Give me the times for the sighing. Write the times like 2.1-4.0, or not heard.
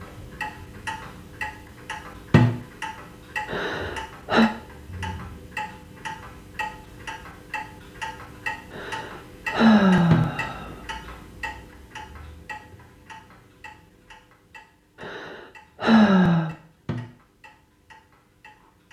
3.5-4.5, 8.7-10.8, 15.0-16.6.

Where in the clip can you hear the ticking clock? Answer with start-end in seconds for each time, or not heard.
0.0-18.8.